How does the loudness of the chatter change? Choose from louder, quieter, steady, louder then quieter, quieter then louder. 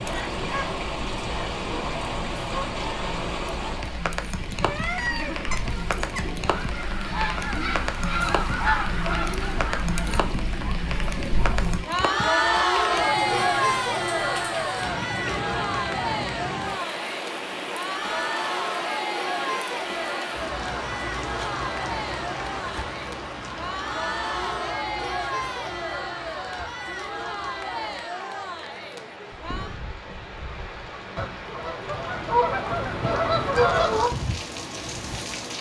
louder then quieter.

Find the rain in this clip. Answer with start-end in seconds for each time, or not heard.
0.0-35.5.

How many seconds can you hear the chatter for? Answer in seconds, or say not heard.
30 s.